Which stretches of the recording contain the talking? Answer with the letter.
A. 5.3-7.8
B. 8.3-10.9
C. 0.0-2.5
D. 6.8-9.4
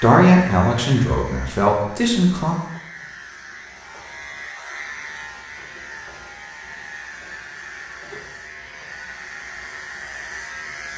C.